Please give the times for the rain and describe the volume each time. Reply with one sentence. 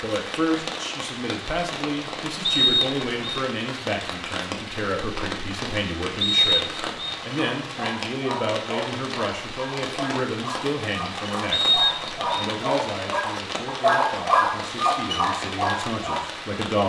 The rain can be heard from 0.0 to 16.8 s, at a steady volume.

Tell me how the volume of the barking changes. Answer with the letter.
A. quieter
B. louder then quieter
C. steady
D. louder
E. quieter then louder
D.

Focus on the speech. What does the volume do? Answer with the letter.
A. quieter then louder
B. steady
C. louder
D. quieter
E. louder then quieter
B.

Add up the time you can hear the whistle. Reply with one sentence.
You can hear the whistle for 3 seconds altogether.